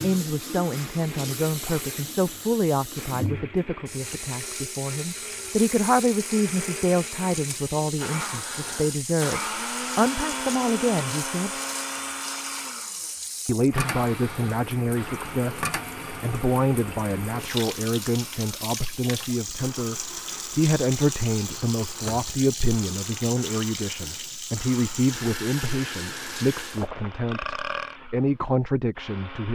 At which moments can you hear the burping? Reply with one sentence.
The burping can be heard from 26.8 to 28.0 s.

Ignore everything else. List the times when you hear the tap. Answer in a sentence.
You can hear the tap from 0.0 to 26.9 s.